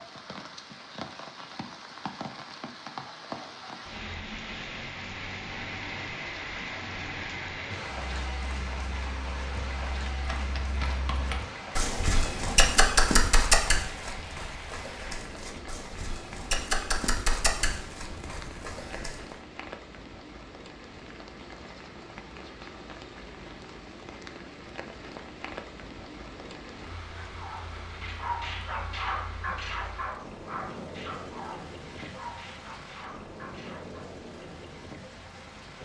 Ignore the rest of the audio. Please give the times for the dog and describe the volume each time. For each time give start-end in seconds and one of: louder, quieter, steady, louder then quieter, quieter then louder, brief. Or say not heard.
27.2-34.1 quieter.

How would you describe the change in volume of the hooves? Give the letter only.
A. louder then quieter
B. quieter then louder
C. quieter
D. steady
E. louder
A.